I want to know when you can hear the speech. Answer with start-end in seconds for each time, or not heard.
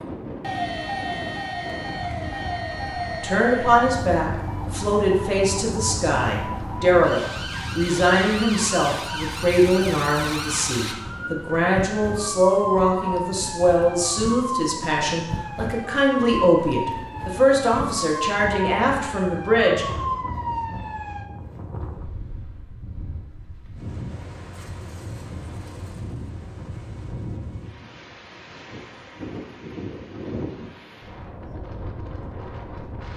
3.2-19.9.